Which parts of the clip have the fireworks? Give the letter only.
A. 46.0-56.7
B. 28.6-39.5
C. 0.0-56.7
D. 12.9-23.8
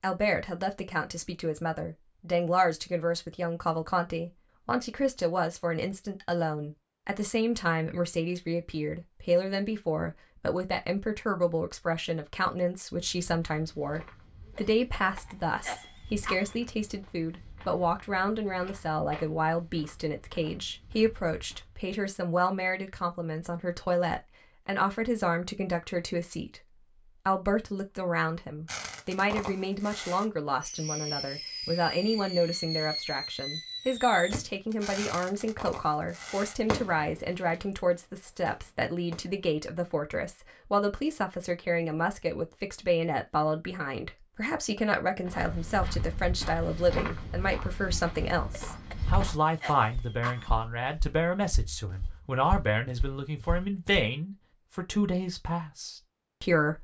B.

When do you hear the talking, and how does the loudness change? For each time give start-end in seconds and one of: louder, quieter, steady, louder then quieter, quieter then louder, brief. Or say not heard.
0.0-56.7 steady.